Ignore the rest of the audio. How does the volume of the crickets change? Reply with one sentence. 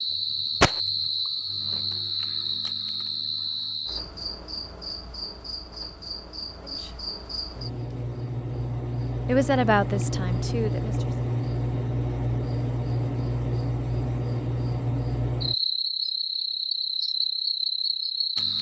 The loudness of the crickets goes down, then up.